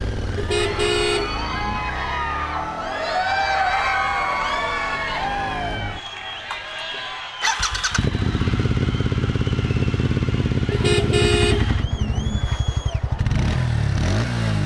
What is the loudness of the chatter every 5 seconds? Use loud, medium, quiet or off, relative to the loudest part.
loud, medium, quiet.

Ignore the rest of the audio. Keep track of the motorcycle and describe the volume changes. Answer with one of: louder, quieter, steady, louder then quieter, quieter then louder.
louder.